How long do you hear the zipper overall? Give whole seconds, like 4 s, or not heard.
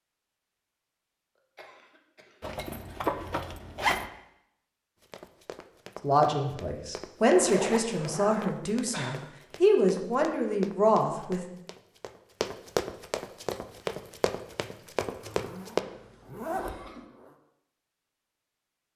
5 s.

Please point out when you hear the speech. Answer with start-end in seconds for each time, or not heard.
6.0-11.4.